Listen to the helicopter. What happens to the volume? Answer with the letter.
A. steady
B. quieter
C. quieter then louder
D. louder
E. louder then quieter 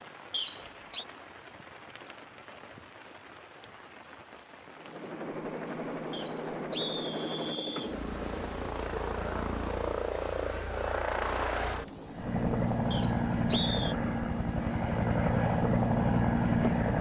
D.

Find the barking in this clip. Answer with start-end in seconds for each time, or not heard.
not heard.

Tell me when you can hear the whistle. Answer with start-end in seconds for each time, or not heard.
0.3-1.1, 6.1-8.0, 12.9-13.9.